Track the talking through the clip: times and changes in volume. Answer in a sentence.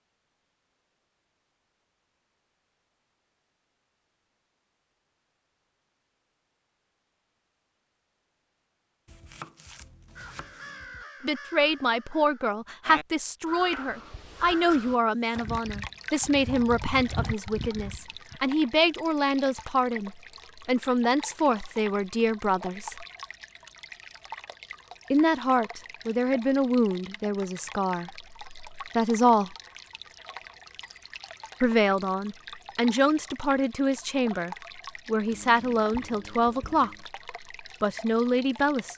You can hear the talking from 11.2 to 23.1 s, at a steady volume; from 25.1 to 29.6 s, getting quieter then louder; and from 31.6 to 38.9 s, at a steady volume.